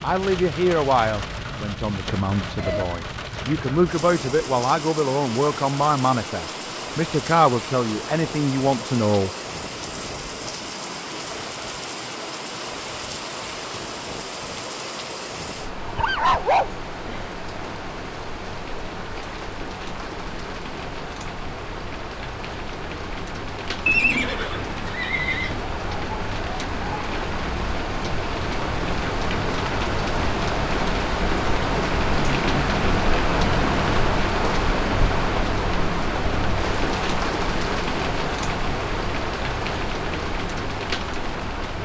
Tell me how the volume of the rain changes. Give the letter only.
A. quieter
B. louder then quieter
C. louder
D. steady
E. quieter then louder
C.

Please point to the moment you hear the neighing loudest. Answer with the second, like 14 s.
24 s.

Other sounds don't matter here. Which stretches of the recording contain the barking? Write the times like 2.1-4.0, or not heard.
15.8-17.3.